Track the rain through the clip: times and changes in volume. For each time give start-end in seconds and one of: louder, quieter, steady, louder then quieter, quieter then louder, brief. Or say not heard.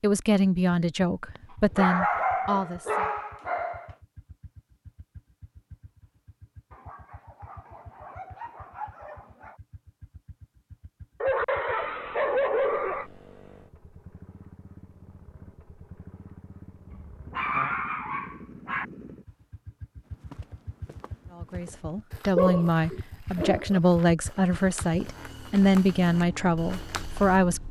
not heard.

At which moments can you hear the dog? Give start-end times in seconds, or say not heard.
1.4-3.9, 6.7-9.6, 11.2-13.1, 16.9-18.9, 22.4-23.8.